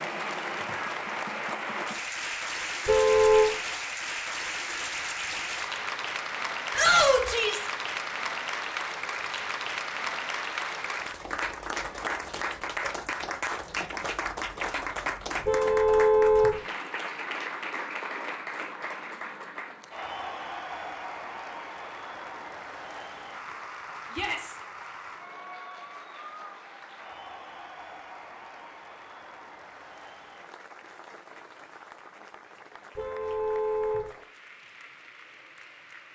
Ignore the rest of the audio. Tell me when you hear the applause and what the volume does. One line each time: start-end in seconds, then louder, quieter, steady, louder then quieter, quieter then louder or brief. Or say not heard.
0.0-36.1 quieter.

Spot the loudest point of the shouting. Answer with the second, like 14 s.
7 s.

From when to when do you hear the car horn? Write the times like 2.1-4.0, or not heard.
2.9-3.5, 15.4-16.6, 33.0-34.1.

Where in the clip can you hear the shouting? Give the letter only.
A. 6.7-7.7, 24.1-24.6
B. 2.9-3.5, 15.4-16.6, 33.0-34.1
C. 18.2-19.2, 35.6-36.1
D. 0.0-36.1
A.